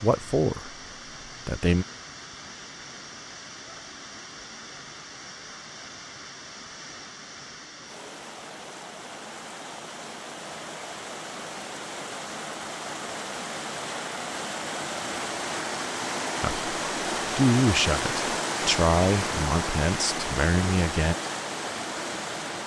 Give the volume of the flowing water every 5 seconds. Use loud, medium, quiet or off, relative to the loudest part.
quiet, quiet, medium, loud, loud.